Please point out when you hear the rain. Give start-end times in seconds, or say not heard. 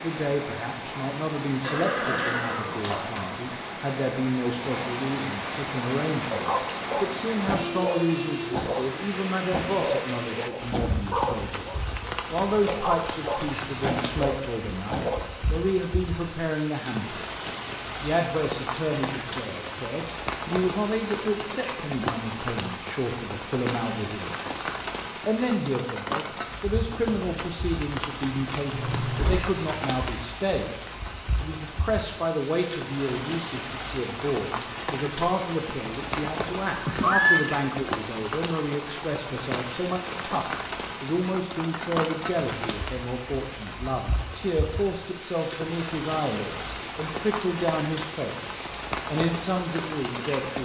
0.0-50.6.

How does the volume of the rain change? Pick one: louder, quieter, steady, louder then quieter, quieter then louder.
steady.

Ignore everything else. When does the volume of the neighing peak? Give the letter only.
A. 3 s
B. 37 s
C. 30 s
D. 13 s
B.